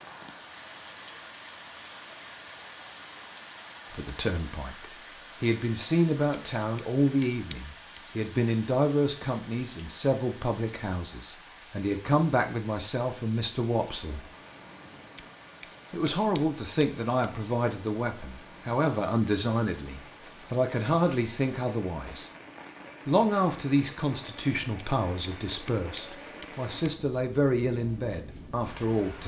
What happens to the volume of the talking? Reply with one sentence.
The loudness of the talking stays about the same.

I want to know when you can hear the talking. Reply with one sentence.
The talking can be heard from 3.9 to 14.3 s, from 15.9 to 22.3 s and from 23.1 to 29.2 s.